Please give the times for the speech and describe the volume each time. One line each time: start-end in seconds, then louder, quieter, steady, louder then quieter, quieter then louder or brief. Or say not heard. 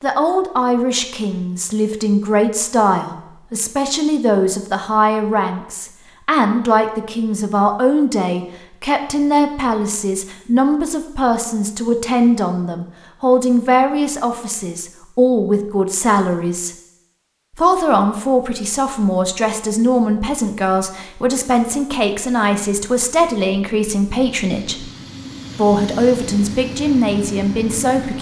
0.0-16.7 steady
17.6-24.9 steady
25.6-28.1 brief.